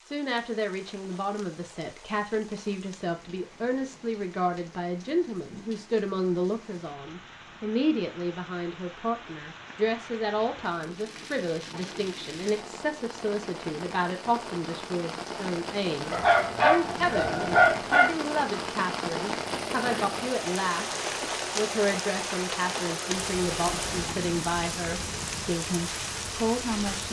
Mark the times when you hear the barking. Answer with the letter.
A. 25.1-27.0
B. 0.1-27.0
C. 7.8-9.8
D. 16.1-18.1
D.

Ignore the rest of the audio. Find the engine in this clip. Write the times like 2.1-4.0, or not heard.
19.4-24.4.